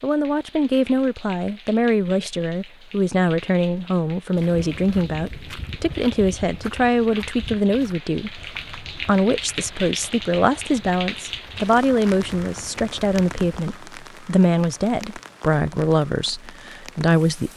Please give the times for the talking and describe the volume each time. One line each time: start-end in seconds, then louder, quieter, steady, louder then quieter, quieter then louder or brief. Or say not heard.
0.0-17.5 steady.